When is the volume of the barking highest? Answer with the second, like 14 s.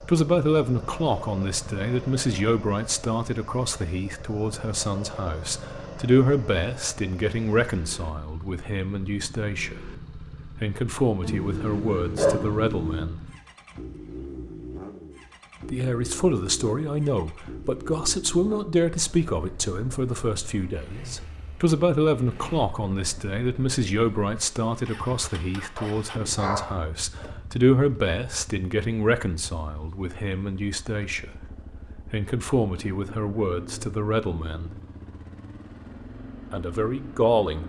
12 s.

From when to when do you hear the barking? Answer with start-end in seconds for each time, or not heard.
11.2-13.1, 25.8-27.4.